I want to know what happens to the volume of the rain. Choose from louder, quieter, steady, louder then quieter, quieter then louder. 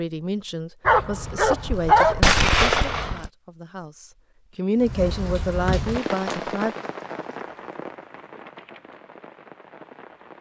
quieter.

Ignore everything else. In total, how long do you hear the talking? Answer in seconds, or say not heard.
7 s.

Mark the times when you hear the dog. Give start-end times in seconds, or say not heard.
0.8-3.3.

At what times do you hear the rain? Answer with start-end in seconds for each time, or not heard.
4.8-10.3.